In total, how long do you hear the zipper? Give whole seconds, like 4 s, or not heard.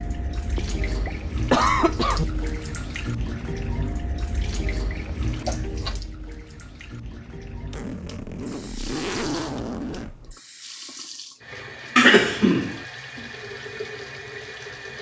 3 s.